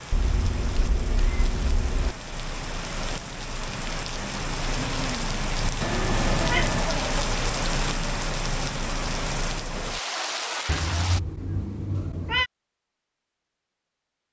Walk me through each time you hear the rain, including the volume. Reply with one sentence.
You can hear the rain from 0.0 to 11.2 s, getting louder.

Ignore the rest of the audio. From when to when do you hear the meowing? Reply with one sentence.
You can hear the meowing from 0.1 to 2.1 s, from 5.8 to 6.8 s and from 10.7 to 12.5 s.